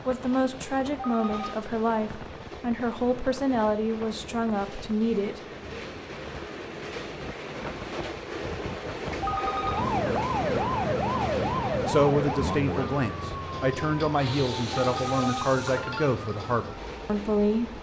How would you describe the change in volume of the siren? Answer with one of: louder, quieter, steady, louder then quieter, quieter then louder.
quieter.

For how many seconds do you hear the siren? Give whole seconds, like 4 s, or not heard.
8 s.